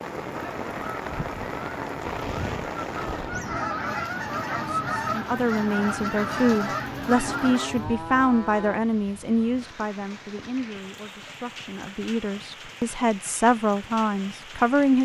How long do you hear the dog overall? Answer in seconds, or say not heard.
not heard.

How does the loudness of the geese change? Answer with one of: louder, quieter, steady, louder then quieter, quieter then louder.
louder.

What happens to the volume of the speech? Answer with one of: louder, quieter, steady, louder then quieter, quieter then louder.
quieter then louder.